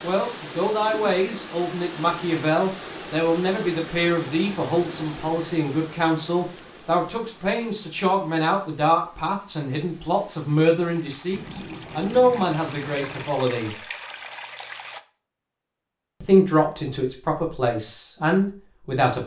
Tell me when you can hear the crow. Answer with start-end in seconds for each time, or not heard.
not heard.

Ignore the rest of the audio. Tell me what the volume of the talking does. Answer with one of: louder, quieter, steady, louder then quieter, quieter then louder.
steady.